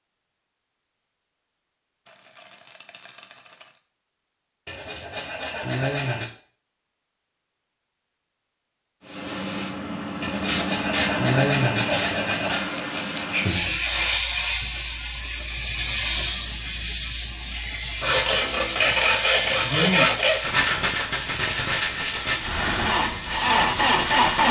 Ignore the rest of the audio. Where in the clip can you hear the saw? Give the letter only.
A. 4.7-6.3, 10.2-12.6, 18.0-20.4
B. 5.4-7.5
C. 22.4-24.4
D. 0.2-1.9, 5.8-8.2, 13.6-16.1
A.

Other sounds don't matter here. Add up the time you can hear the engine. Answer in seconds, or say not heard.
2 s.